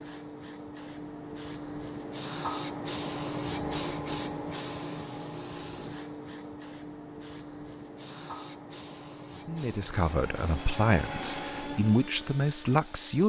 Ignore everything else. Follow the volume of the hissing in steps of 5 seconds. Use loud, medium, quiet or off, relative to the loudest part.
loud, medium, medium.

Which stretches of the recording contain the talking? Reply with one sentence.
The talking can be heard from 9.4 to 13.2 s.